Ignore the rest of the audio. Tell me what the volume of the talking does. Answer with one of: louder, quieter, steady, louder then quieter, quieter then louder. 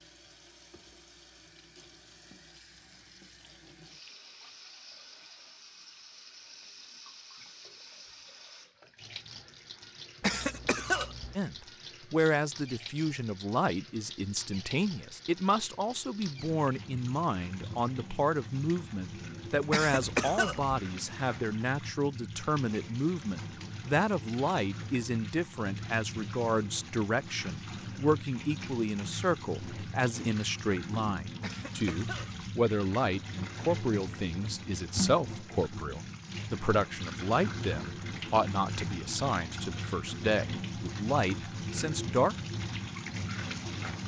steady.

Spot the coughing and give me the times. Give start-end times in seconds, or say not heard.
10.2-11.3, 19.7-20.8, 31.4-32.5.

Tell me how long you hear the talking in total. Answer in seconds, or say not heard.
31 s.